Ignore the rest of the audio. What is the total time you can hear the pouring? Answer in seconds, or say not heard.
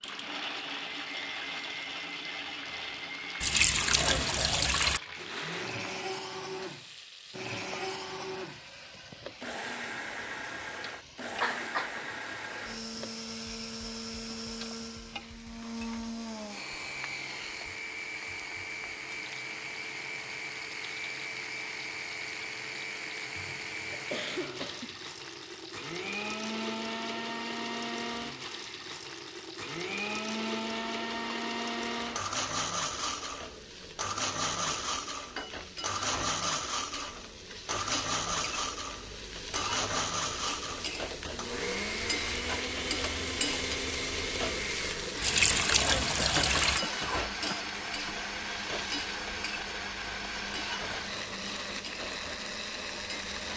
3 s.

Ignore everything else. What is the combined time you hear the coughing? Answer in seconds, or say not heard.
4 s.